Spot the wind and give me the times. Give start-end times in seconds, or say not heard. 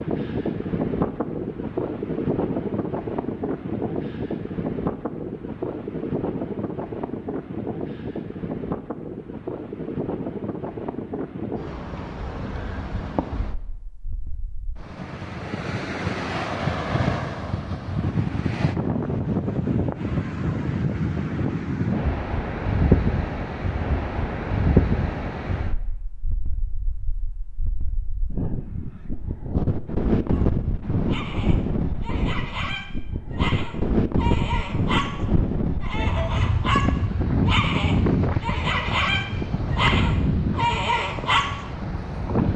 0.0-42.5.